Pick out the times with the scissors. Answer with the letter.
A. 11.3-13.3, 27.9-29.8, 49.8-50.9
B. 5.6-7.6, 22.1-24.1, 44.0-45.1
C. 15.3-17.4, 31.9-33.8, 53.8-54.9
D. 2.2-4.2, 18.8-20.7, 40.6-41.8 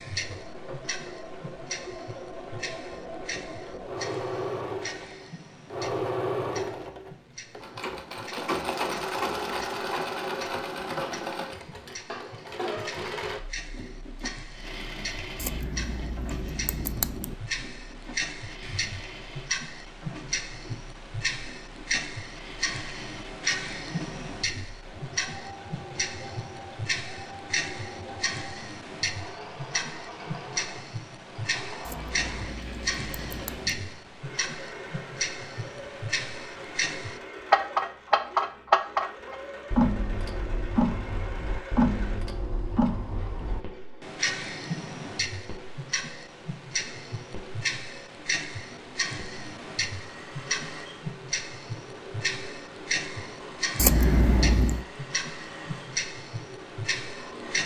C.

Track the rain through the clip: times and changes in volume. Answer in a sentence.
You can't hear the rain here.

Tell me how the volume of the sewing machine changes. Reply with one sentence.
The loudness of the sewing machine goes down.